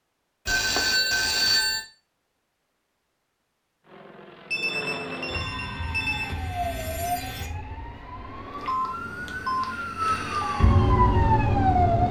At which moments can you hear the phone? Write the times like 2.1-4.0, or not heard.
0.5-1.9, 4.5-6.3, 8.6-10.6.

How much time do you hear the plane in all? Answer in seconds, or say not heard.
5 s.